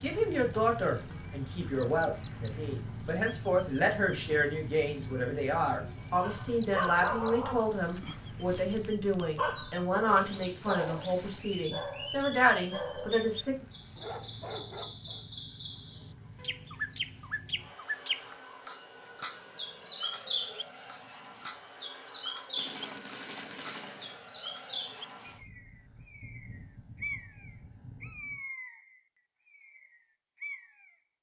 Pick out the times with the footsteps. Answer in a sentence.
The footsteps can't be heard in this clip.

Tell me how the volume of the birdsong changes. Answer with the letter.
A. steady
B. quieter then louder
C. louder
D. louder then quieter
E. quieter
D.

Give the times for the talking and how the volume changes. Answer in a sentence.
You can hear the talking from 0.0 to 13.7 s, at a steady volume.